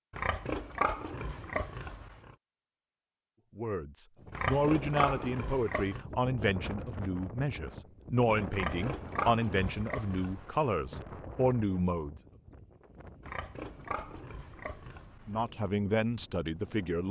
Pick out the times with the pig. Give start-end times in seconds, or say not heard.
0.1-2.4, 4.3-6.0, 8.5-10.7, 13.2-15.4.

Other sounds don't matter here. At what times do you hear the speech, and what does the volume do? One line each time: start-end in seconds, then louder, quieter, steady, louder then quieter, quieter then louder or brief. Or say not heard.
3.5-12.2 steady
15.2-17.0 brief.